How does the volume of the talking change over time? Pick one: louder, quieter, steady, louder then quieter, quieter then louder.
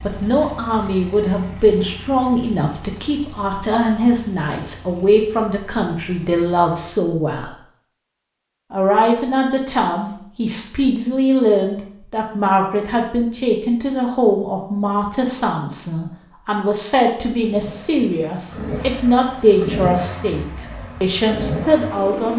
steady.